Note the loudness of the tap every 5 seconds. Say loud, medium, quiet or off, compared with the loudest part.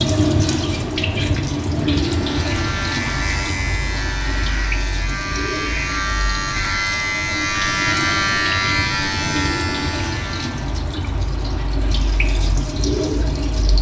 loud, medium, loud.